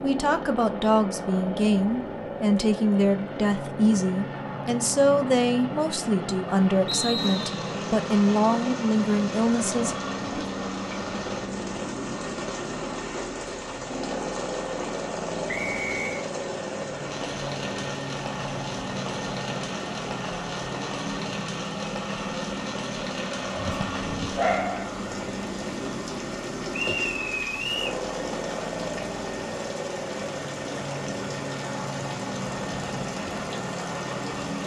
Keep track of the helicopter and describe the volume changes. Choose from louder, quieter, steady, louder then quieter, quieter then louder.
steady.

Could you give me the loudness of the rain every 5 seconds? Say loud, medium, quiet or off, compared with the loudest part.
off, loud, loud, loud, loud, loud, loud.